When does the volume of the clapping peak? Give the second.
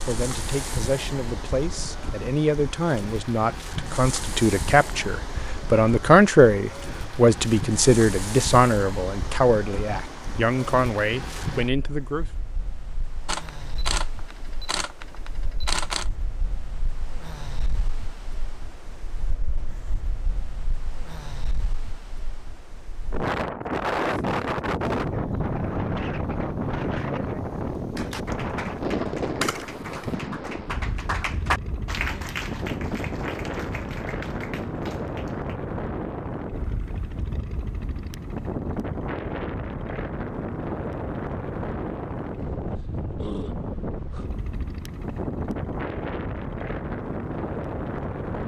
31 s.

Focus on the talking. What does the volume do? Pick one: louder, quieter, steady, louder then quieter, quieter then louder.
louder then quieter.